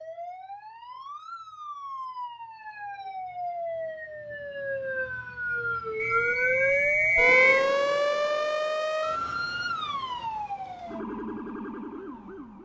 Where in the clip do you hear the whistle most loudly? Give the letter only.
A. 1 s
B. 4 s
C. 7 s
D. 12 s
C.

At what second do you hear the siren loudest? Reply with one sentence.
The loudest moment of the siren is at 8 seconds.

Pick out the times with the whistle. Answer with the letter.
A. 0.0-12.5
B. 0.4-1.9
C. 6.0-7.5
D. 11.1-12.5
C.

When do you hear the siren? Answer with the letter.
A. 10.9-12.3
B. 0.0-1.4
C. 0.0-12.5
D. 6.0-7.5
C.